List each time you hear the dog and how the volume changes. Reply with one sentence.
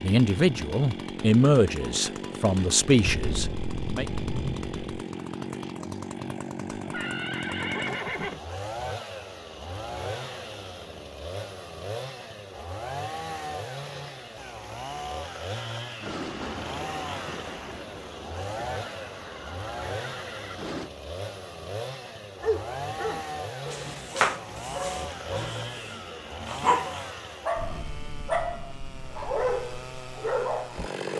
You can hear the dog from 22.4 to 30.9 s, getting quieter then louder.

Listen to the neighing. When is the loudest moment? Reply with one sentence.
The volume of the neighing peaks at 8 seconds.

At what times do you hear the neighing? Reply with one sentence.
You can hear the neighing from 6.8 to 8.4 s and from 18.8 to 20.6 s.